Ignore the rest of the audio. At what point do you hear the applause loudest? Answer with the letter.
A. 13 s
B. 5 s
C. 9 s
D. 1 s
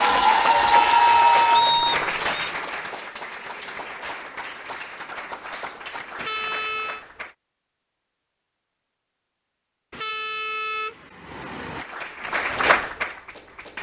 D.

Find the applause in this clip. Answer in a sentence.
The applause can be heard from 0.0 to 7.3 s and from 11.7 to 13.7 s.